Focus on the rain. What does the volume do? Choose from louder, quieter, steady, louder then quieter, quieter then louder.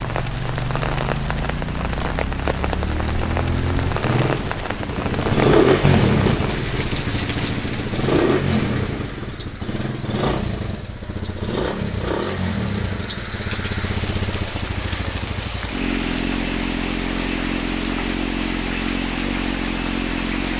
quieter then louder.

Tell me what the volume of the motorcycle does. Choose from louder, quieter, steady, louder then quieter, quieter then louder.
louder then quieter.